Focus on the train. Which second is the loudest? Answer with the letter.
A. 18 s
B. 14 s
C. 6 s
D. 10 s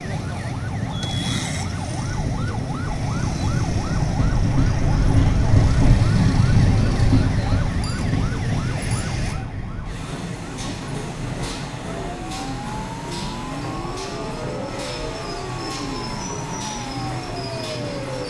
C.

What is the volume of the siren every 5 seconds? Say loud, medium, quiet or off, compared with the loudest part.
loud, loud, medium, medium.